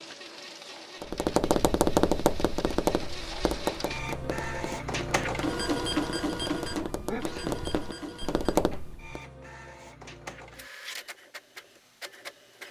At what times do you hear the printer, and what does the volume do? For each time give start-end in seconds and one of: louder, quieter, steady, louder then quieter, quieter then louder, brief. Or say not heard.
0.0-12.6 louder then quieter.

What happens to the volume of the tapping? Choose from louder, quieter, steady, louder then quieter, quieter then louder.
quieter then louder.